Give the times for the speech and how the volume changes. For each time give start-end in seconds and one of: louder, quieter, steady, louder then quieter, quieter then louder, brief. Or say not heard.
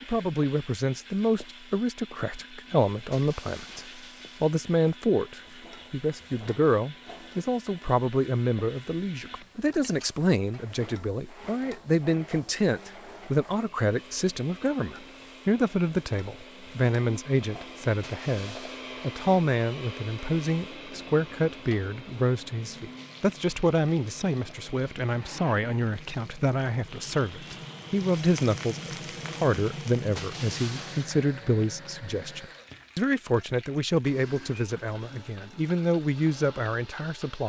0.0-37.4 steady.